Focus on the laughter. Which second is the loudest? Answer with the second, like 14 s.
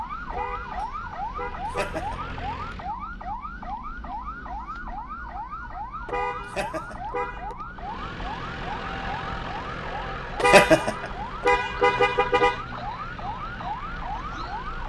11 s.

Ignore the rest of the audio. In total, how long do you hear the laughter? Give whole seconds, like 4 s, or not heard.
3 s.